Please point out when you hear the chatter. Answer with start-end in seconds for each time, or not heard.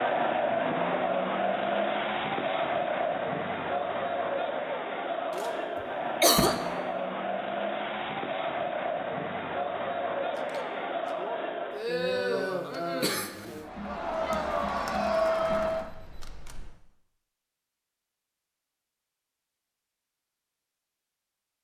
0.0-15.9.